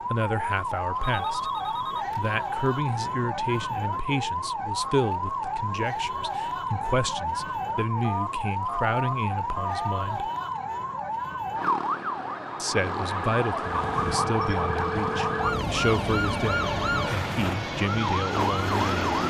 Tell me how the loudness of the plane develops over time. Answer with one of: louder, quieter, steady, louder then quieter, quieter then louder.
louder.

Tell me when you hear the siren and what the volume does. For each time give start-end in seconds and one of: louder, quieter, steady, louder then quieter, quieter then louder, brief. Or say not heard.
0.0-19.2 steady.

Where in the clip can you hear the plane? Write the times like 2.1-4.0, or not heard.
13.8-19.2.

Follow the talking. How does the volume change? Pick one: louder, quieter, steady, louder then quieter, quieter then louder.
steady.